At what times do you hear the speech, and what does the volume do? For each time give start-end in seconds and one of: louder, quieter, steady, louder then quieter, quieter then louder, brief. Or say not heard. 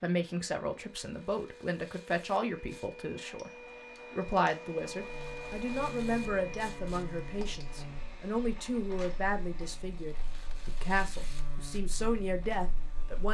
0.0-13.2 steady.